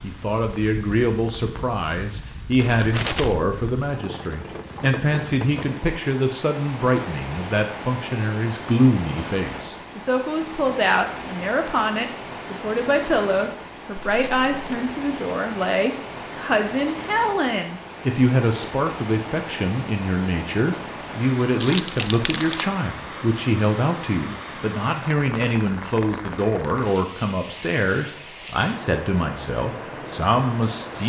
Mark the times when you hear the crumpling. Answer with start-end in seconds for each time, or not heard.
2.5-3.5, 13.9-14.8, 21.6-22.7.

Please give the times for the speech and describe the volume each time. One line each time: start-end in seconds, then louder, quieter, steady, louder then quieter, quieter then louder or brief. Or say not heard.
0.0-31.0 steady.